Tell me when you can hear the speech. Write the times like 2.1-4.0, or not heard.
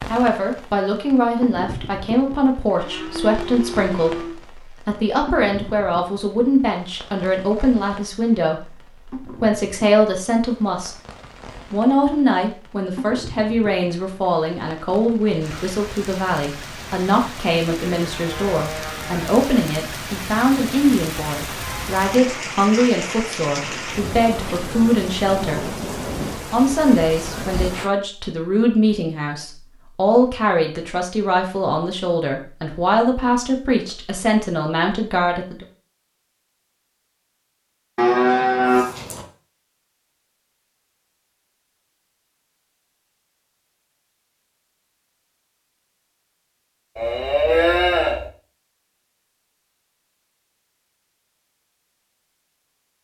0.1-10.9, 11.7-25.7, 26.5-35.6.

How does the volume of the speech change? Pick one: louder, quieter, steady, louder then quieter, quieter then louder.
steady.